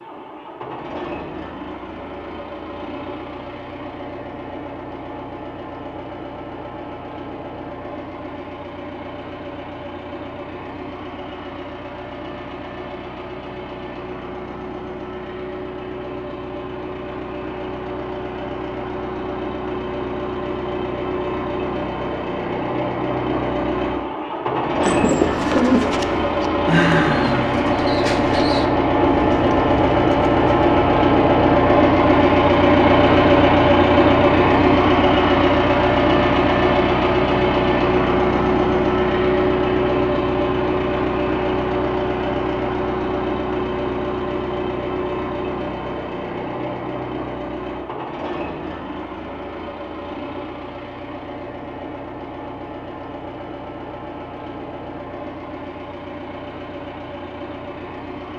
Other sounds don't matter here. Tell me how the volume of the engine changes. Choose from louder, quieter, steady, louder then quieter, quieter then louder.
louder then quieter.